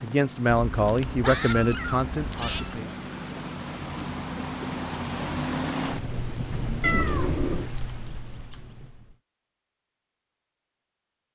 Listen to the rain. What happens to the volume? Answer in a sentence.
The loudness of the rain goes up, then down.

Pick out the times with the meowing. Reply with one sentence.
The meowing can be heard from 0.7 to 2.8 s and from 6.8 to 7.7 s.